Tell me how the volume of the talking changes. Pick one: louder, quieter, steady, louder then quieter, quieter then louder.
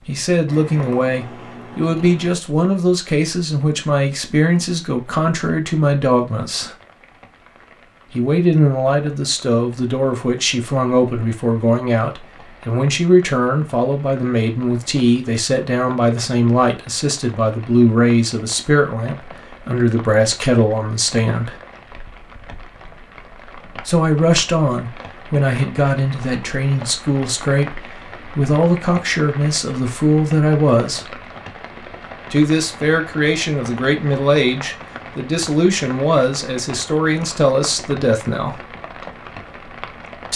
steady.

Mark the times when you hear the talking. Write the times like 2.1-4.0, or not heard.
0.1-6.8, 8.1-21.6, 23.9-31.1, 32.3-38.5.